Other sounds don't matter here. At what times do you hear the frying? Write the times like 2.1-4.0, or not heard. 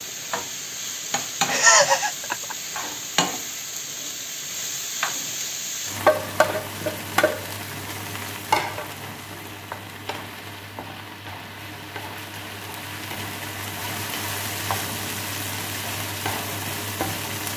0.0-17.5.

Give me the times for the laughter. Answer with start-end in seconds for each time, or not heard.
1.4-2.5.